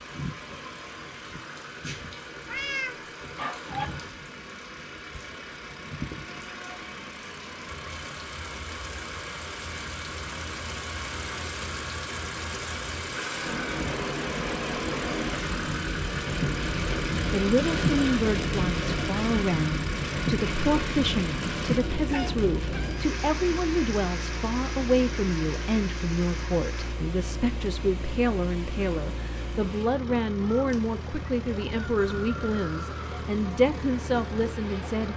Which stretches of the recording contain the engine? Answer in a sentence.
You can hear the engine from 0.0 to 35.1 s.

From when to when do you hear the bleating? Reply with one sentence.
The bleating can't be heard in this clip.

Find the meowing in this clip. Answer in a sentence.
You can hear the meowing from 2.5 to 3.9 s and from 22.1 to 23.0 s.